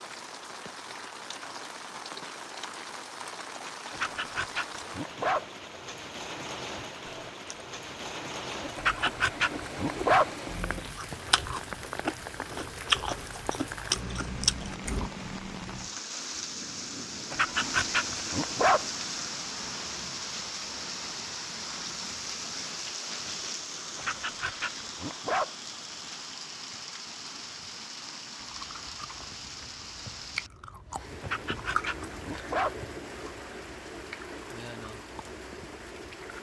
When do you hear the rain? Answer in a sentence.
You can hear the rain from 0.0 to 36.3 s.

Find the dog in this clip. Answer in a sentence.
The dog can be heard from 3.9 to 5.5 s, from 8.8 to 10.3 s, from 17.3 to 18.9 s, from 23.9 to 25.5 s and from 31.2 to 32.8 s.